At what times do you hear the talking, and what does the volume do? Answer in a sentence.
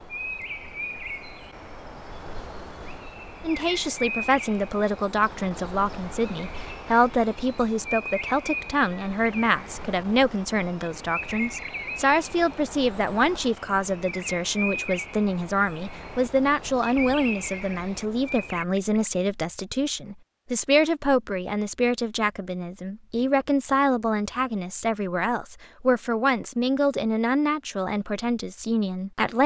The talking can be heard from 3.4 to 29.4 s, at a steady volume.